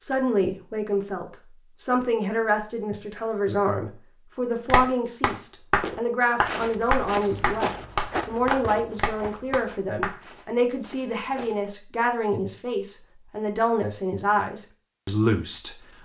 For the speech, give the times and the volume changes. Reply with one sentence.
The speech can be heard from 0.0 to 15.8 s, at a steady volume.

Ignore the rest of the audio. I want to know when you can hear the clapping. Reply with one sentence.
The clapping can be heard from 4.7 to 10.2 s.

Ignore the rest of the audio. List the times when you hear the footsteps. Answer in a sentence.
You can hear the footsteps from 5.8 to 11.7 s.